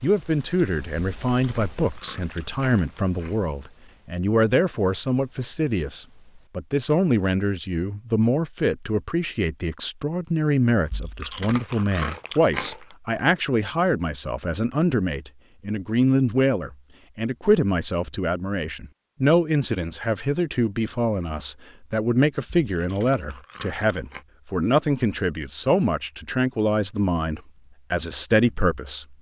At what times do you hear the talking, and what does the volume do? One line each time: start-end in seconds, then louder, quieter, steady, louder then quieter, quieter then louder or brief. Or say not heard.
0.0-29.1 steady.